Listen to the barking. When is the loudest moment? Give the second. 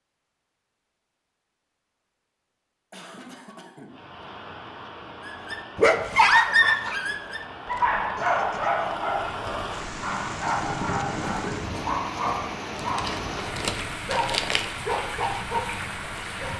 6 s.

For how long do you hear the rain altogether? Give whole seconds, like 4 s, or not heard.
13 s.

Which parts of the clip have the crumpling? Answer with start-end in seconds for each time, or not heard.
12.8-14.7.